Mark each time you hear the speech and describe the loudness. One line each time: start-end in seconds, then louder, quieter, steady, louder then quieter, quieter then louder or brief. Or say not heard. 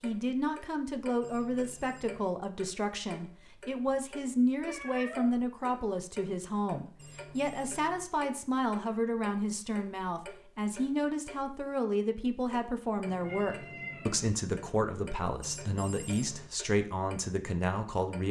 0.0-18.2 steady.